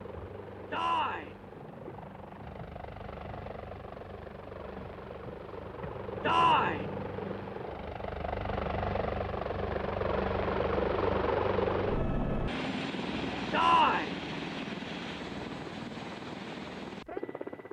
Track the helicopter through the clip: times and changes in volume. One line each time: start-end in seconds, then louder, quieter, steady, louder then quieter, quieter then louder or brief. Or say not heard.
0.0-17.6 louder then quieter.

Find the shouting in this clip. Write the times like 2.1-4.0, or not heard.
0.7-1.3, 6.2-6.8, 13.5-14.2.